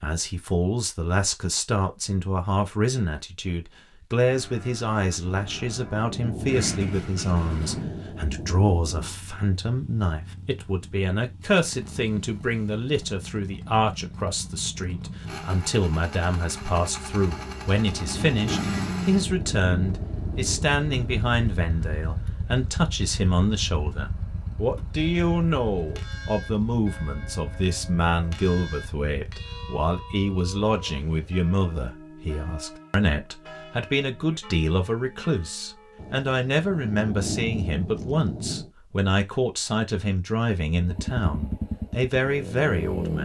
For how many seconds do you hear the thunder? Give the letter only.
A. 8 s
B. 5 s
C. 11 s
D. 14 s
C.